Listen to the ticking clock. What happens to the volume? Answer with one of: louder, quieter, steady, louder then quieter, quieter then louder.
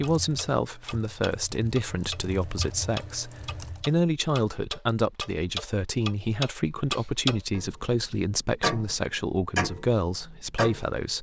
louder.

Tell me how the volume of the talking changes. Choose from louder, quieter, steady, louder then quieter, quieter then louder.
steady.